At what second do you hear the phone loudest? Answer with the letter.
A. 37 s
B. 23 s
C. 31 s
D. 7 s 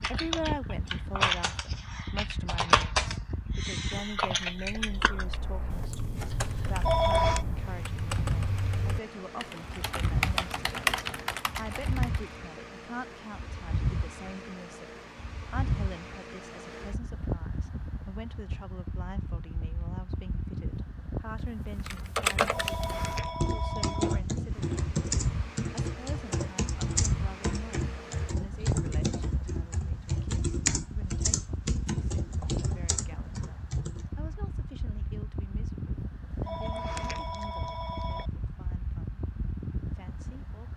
D.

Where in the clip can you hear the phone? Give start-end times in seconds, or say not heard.
6.7-7.5, 22.4-24.2, 36.3-38.3.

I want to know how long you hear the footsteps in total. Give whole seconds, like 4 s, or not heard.
not heard.